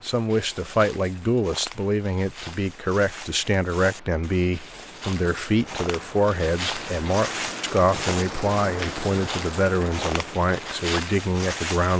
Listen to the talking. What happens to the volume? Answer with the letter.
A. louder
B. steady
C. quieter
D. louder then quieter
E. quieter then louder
B.